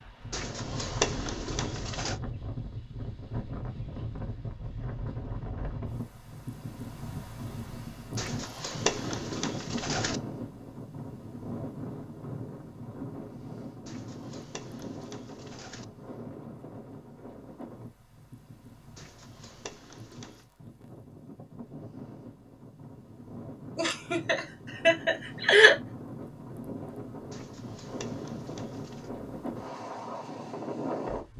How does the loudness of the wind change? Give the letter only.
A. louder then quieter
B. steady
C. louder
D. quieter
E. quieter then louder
E.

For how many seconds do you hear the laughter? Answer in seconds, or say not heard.
2 s.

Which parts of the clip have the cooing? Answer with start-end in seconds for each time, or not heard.
0.3-2.1, 8.2-10.2, 13.8-15.8, 18.9-20.4, 27.3-29.1.